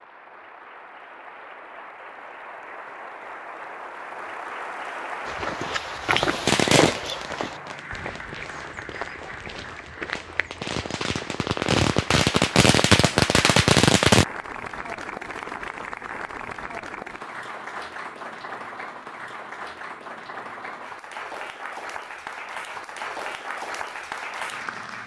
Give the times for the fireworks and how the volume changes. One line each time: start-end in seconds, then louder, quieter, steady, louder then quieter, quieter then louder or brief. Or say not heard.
6.5-14.2 quieter then louder.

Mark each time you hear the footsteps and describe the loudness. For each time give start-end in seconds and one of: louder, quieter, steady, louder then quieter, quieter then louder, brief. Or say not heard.
5.2-12.2 quieter.